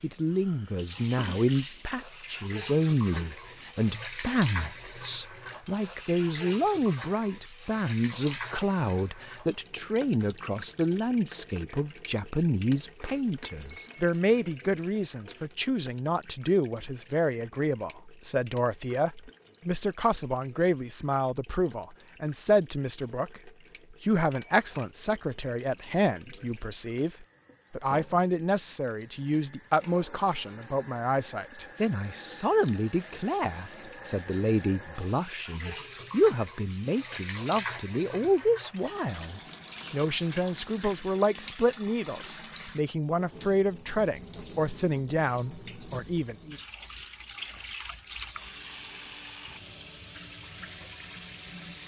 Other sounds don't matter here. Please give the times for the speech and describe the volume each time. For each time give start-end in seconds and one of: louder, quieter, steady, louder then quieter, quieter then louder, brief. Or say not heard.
0.0-46.5 steady.